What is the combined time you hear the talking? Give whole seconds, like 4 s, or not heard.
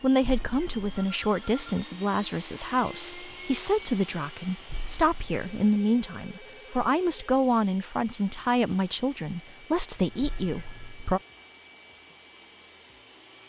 11 s.